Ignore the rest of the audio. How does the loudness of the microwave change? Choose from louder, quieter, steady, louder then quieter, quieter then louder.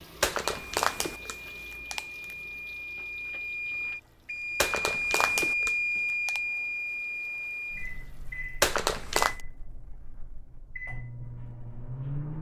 louder then quieter.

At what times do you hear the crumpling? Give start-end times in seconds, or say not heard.
0.2-2.4, 4.6-6.4, 8.6-9.4.